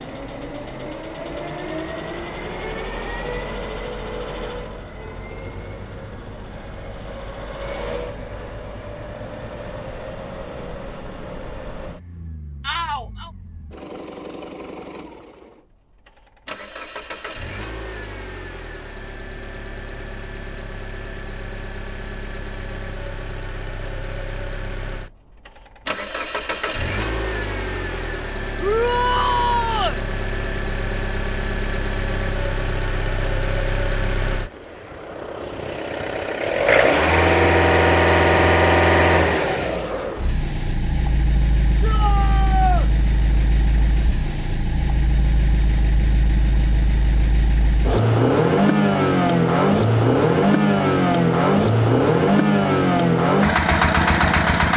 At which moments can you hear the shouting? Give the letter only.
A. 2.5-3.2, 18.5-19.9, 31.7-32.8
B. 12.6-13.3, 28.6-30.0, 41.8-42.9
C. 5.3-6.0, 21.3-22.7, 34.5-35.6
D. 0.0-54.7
B.